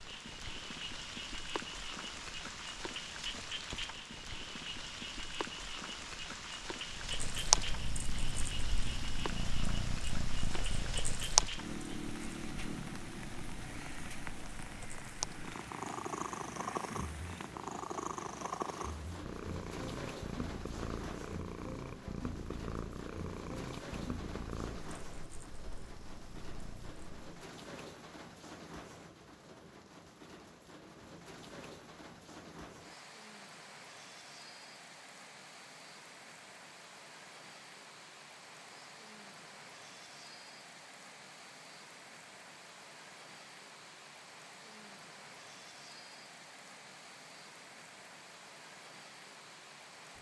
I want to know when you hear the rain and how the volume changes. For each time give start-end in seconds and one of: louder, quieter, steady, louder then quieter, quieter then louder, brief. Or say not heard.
0.0-50.1 quieter.